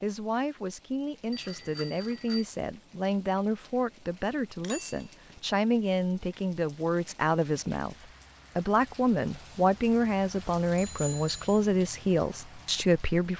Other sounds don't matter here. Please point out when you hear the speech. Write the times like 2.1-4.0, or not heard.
0.0-13.3.